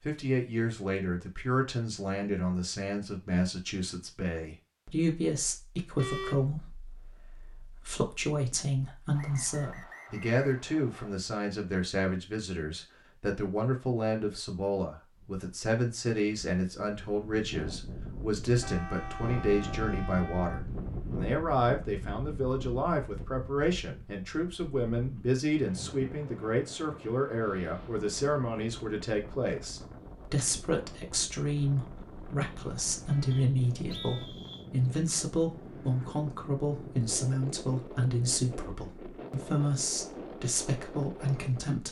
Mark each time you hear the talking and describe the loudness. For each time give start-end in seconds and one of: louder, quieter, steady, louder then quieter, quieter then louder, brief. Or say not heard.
0.0-41.8 steady.